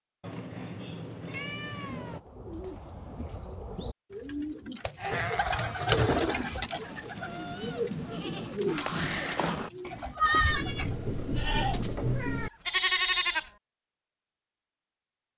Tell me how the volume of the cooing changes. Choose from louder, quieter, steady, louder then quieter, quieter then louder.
louder then quieter.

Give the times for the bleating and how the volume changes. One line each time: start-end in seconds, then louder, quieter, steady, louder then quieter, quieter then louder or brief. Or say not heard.
5.0-11.8 louder
12.7-13.5 brief.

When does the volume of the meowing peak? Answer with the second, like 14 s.
12 s.